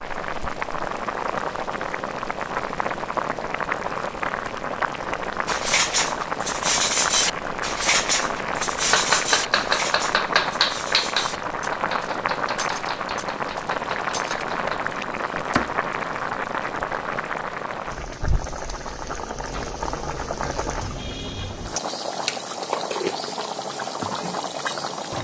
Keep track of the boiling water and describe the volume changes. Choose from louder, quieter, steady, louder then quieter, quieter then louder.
steady.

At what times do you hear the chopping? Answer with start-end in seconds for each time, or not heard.
8.8-15.8.